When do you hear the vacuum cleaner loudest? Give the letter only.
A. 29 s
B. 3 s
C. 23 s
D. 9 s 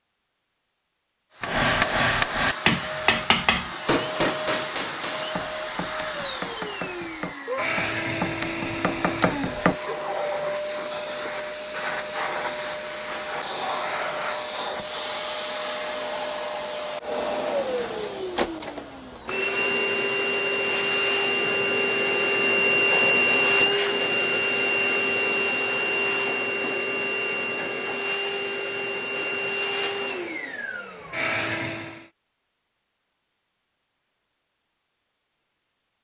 C.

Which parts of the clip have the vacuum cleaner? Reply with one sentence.
The vacuum cleaner can be heard from 1.3 to 32.1 s.